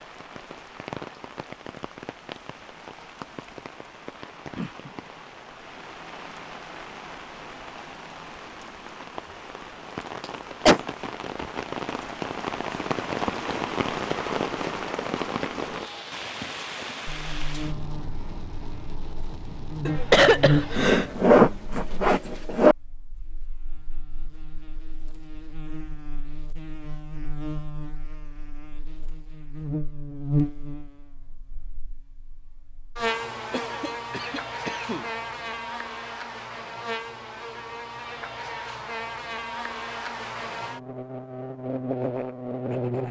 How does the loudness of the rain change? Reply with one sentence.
The volume of the rain goes up, then down.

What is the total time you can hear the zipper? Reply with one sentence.
The zipper can be heard for 2 seconds in total.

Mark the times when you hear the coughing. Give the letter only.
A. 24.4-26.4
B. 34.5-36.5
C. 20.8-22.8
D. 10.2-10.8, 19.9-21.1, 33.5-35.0
D.